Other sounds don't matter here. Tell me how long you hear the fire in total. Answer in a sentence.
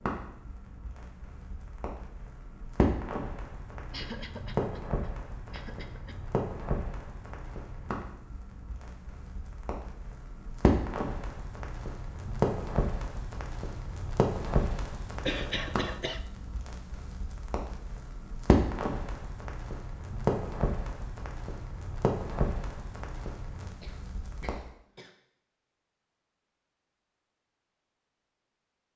You can hear the fire for 25 seconds altogether.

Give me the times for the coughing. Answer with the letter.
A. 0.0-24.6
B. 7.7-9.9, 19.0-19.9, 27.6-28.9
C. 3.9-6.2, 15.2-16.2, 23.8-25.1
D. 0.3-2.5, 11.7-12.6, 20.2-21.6
C.